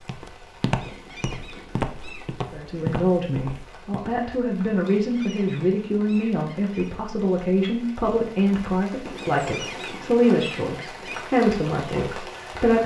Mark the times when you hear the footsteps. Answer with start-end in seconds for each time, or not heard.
0.0-4.1.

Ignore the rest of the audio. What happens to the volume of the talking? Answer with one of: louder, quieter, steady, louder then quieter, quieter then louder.
steady.